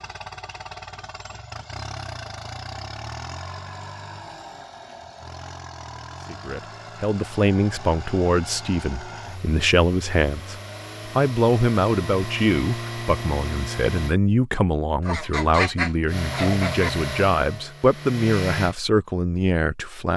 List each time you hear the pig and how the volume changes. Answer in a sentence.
You can't hear the pig here.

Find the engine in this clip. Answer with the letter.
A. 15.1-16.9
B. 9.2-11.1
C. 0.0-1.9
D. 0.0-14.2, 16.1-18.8
D.